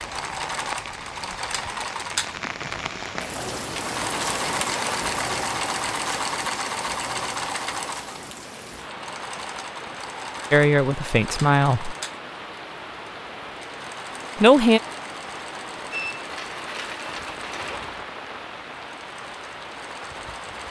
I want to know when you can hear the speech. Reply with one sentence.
The speech can be heard from 10.5 to 11.9 s and from 14.4 to 14.8 s.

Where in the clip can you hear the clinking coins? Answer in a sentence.
You can hear the clinking coins from 15.9 to 17.9 s.